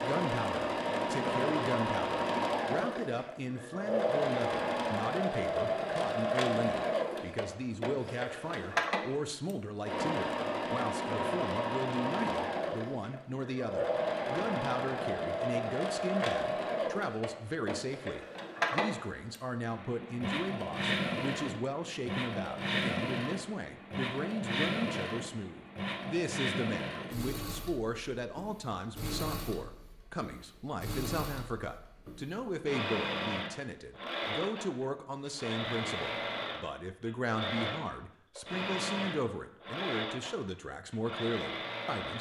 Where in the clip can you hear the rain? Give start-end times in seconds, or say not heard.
not heard.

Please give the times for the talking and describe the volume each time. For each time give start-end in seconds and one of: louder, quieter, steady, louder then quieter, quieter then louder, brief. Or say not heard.
0.0-42.1 steady.